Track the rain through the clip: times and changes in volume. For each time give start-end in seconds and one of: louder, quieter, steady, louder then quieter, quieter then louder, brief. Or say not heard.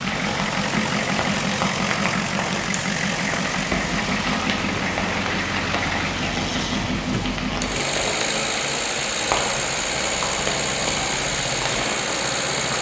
0.0-12.7 steady.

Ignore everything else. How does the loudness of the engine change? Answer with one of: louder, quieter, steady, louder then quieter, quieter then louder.
steady.